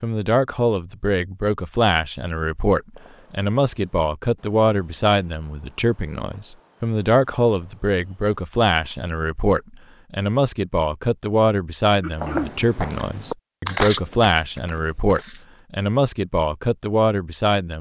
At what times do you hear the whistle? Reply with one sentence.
You can't hear the whistle here.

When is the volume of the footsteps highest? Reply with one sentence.
The loudest moment of the footsteps is at 14 seconds.